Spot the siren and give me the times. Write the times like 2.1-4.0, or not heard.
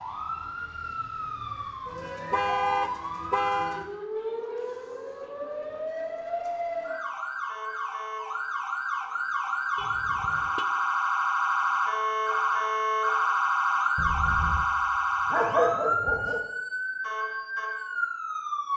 0.0-18.7.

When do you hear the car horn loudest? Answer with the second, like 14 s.
3 s.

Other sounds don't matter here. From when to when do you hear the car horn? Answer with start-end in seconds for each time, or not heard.
2.3-3.9, 9.8-10.7, 13.9-14.7.